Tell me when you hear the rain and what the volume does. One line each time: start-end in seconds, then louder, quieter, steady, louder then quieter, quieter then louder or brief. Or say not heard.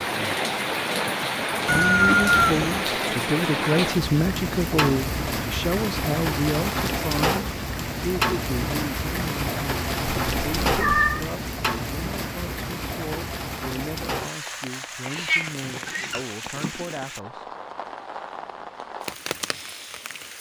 0.0-20.3 quieter.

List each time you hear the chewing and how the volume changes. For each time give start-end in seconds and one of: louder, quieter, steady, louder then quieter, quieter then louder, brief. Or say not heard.
not heard.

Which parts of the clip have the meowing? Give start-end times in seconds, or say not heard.
1.6-2.9, 10.1-11.3, 15.0-16.8.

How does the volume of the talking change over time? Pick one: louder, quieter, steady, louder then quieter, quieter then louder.
quieter.